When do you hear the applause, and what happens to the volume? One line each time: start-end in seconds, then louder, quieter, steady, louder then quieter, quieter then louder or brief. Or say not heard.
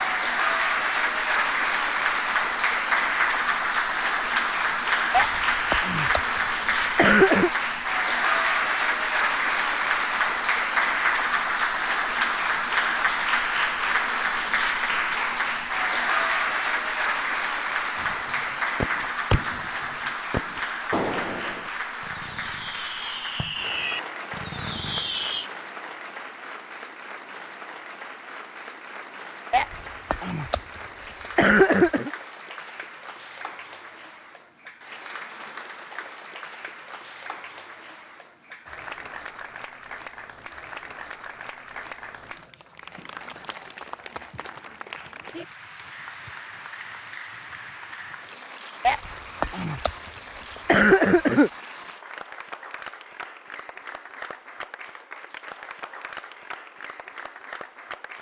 0.0-58.1 quieter.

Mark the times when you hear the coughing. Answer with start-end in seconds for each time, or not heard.
5.1-7.5, 29.5-32.1, 48.9-51.5.